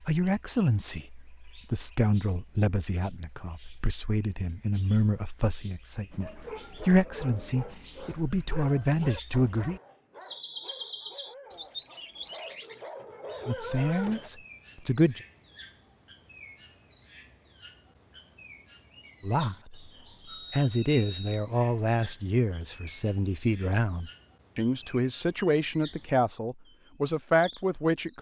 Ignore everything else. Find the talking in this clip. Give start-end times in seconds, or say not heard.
0.1-9.8, 13.4-15.2, 19.2-19.9, 20.5-28.1.